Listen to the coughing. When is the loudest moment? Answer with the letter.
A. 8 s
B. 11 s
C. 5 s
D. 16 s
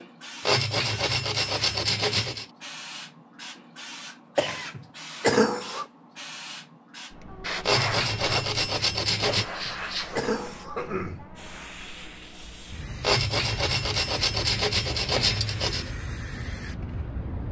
C.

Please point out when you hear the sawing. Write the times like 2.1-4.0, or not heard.
0.4-2.5, 7.7-9.4, 13.0-15.9.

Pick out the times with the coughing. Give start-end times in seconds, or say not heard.
4.3-5.8, 9.5-11.2.